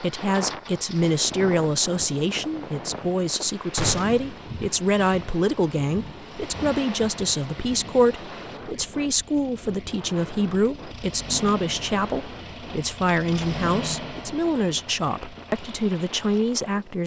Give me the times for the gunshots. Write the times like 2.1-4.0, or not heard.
3.8-4.3.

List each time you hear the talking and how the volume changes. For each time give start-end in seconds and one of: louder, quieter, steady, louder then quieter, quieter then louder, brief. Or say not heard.
0.0-17.0 steady.